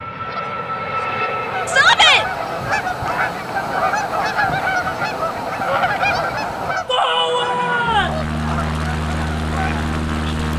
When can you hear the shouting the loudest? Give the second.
2 s.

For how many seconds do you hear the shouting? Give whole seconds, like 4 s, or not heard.
2 s.